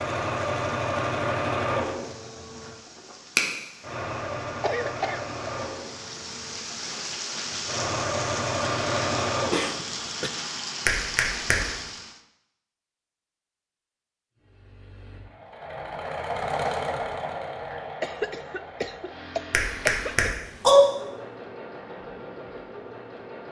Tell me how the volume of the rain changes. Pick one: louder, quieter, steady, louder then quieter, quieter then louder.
louder.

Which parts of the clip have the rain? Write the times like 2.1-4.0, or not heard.
0.0-12.2.